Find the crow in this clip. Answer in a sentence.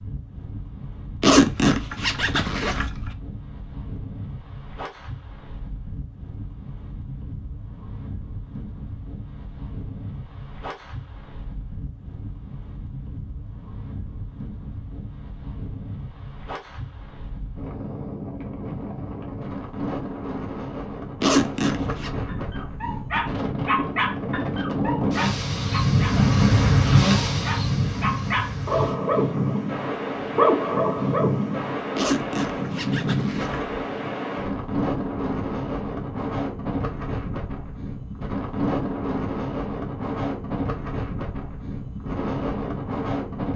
You can't hear the crow here.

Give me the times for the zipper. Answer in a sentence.
The zipper can be heard from 1.2 to 3.1 s, from 21.2 to 22.1 s and from 31.9 to 33.8 s.